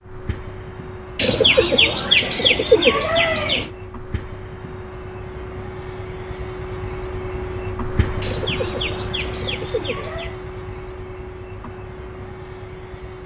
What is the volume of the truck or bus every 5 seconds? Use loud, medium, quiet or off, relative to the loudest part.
medium, loud, medium.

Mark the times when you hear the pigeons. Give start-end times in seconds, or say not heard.
1.1-3.7, 8.2-10.3.